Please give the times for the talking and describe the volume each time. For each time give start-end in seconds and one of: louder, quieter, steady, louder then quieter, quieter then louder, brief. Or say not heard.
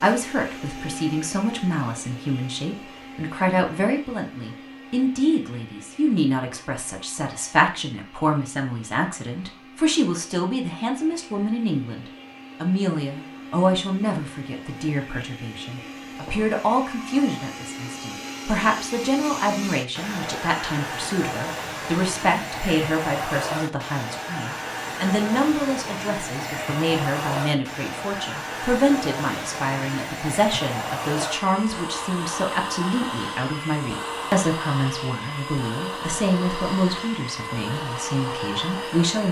0.0-39.2 steady.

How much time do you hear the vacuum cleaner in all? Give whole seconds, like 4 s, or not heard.
39 s.